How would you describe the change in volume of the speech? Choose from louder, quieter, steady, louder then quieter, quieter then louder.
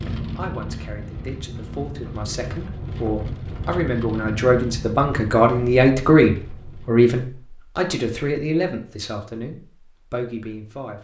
louder then quieter.